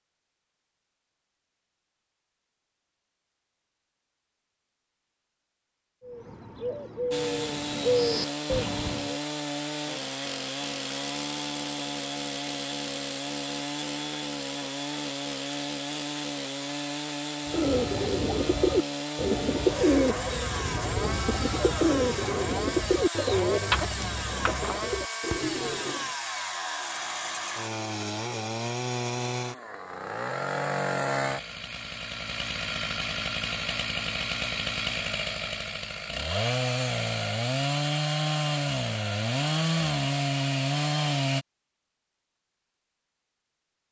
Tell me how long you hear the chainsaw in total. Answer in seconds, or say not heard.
34 s.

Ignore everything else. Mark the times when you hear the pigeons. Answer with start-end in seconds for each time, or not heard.
6.0-9.2, 17.4-26.1.